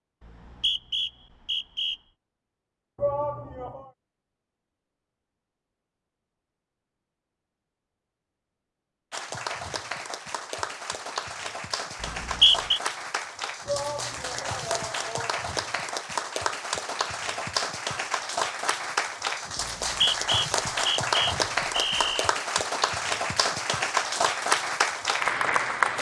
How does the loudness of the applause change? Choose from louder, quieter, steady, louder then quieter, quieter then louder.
louder.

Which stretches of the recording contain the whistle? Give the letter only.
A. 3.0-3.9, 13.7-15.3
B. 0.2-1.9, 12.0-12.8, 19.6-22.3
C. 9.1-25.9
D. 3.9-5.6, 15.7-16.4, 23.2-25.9
B.